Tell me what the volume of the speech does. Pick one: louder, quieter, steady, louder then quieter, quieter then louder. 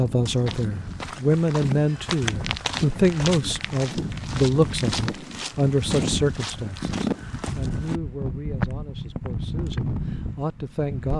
quieter.